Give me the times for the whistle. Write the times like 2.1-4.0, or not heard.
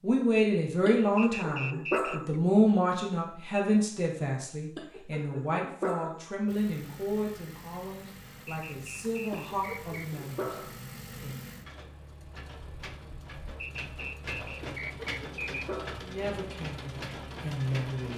1.1-2.4, 8.4-10.1, 13.6-15.7.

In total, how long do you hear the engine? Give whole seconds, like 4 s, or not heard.
12 s.